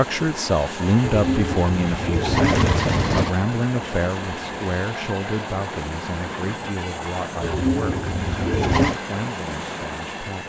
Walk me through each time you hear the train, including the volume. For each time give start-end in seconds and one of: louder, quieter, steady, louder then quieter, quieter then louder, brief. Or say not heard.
0.0-10.4 steady.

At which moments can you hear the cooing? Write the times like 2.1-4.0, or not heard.
1.0-3.4, 7.4-9.0.